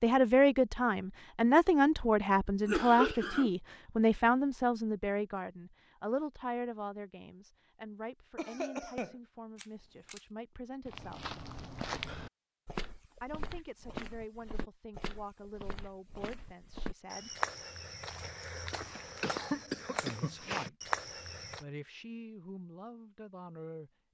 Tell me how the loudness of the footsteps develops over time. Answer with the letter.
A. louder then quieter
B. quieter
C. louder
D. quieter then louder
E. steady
D.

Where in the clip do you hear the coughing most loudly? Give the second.
3 s.